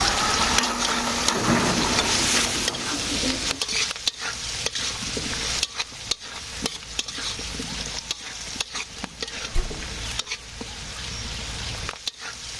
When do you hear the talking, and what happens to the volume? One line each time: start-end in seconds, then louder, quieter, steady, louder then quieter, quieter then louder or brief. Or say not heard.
not heard.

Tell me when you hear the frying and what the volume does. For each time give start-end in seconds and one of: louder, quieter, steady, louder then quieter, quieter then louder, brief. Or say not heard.
0.0-12.5 quieter.